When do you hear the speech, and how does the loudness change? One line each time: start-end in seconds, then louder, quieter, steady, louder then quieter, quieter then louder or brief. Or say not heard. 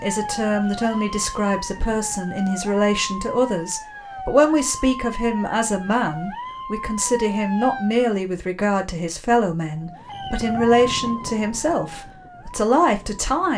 0.0-13.5 steady.